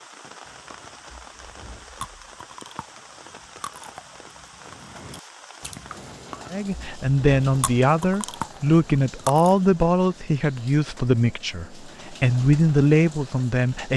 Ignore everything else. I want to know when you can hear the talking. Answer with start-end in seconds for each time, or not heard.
6.5-13.9.